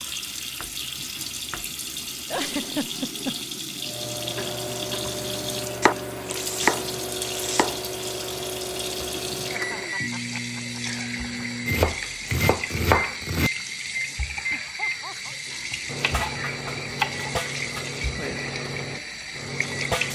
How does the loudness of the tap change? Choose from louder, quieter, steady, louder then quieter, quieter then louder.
steady.